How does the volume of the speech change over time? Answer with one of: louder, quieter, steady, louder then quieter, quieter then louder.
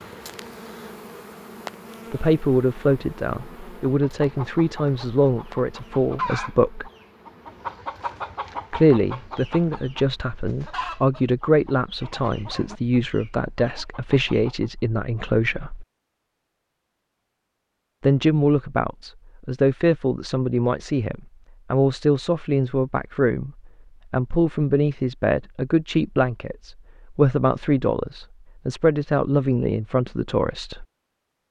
steady.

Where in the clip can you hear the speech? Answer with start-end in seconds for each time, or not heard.
2.1-6.9, 8.7-15.8, 18.0-23.5, 24.1-30.9.